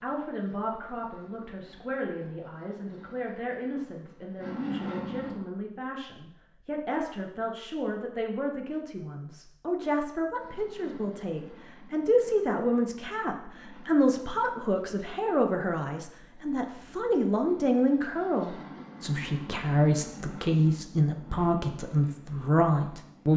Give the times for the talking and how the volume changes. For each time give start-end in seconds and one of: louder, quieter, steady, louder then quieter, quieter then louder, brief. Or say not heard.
0.0-23.3 louder.